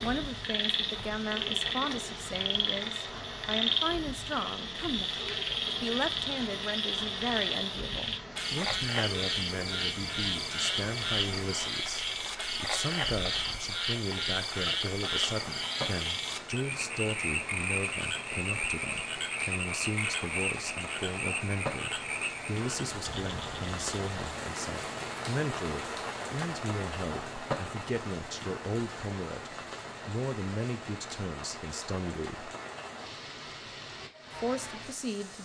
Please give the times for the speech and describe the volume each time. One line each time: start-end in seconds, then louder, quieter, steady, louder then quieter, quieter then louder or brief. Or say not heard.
0.0-32.5 steady
34.3-35.3 brief.